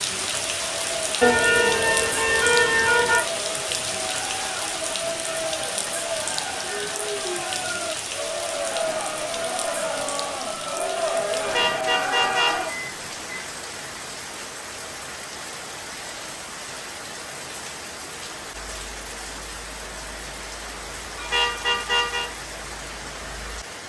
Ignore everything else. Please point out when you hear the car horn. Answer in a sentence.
You can hear the car horn from 1.2 to 3.2 s, from 11.4 to 13.4 s and from 21.1 to 22.3 s.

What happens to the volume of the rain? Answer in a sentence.
The volume of the rain goes down.